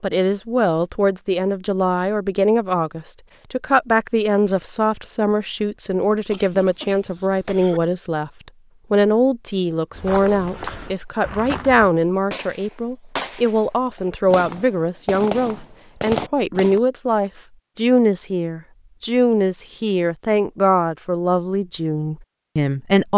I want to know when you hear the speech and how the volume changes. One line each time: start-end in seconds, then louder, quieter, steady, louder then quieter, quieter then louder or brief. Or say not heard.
0.0-23.1 steady.